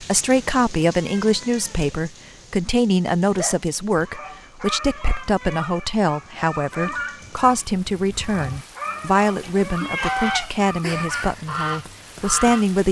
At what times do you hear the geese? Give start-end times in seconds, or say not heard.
6.3-12.7.